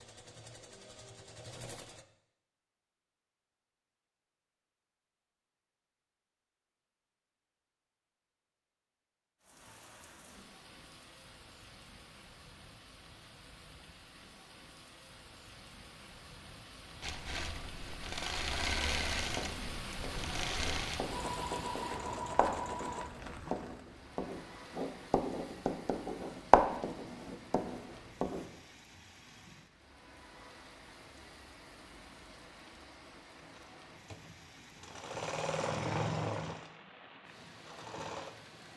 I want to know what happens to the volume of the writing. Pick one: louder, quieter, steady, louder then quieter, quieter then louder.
louder.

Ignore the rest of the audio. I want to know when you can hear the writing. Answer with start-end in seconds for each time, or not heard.
19.1-28.5.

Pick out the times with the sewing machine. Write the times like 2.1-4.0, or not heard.
0.0-2.0, 17.0-23.5, 33.4-38.5.